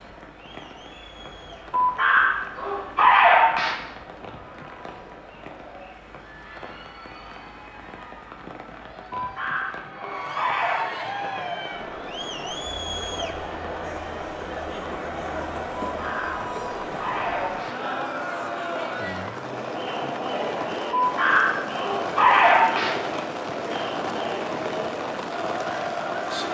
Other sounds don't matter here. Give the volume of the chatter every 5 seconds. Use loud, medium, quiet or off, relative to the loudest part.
quiet, quiet, loud, loud, loud, loud.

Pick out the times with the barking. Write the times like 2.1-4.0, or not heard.
1.8-3.8, 9.2-10.8, 15.8-17.8, 20.9-22.9.